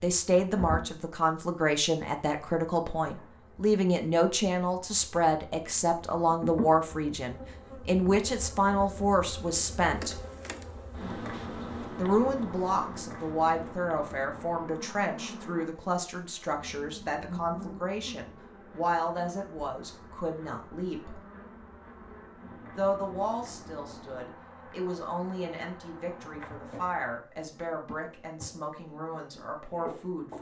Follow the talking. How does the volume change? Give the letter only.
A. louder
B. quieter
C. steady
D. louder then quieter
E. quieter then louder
B.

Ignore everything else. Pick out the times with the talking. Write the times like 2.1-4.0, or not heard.
0.0-10.2, 11.9-21.2, 22.8-30.3.